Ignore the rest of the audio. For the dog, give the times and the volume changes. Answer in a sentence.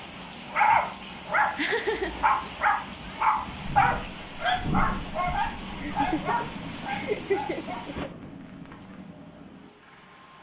The dog can be heard from 0.5 to 8.9 s, getting quieter.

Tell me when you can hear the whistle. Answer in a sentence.
The whistle can't be heard in this clip.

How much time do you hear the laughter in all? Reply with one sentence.
You can hear the laughter for 3 seconds altogether.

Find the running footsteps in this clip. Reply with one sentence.
The running footsteps can't be heard in this clip.